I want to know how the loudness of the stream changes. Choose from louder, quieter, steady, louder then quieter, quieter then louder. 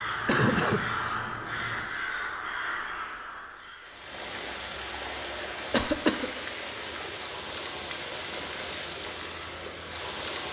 steady.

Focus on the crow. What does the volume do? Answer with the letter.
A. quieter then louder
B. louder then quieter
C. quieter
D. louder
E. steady
C.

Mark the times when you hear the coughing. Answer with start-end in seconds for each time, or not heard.
0.2-0.9, 5.7-6.3.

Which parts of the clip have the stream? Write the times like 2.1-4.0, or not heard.
3.8-10.4.